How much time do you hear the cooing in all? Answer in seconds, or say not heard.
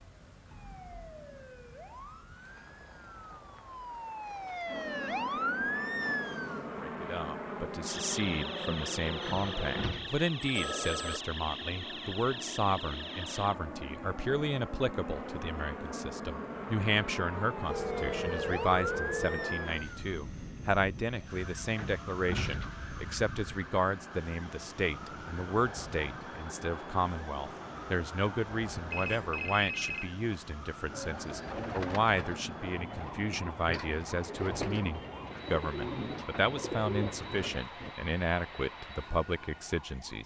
7 s.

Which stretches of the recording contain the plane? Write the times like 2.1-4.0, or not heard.
4.7-39.8.